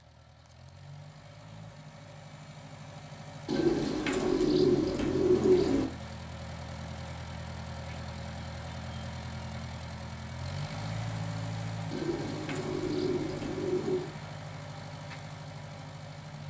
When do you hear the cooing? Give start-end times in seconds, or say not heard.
3.5-5.9, 11.9-14.1.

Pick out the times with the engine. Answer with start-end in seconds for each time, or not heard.
0.0-16.4.